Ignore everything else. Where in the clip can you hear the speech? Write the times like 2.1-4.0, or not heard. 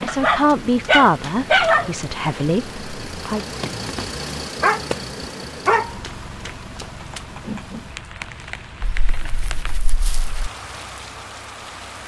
0.0-3.4.